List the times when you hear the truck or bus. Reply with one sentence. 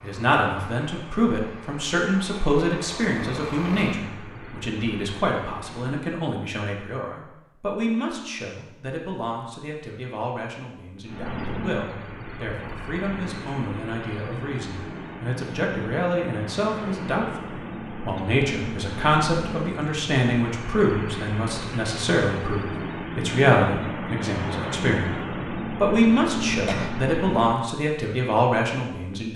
The truck or bus can be heard from 0.0 to 6.0 s and from 11.1 to 27.8 s.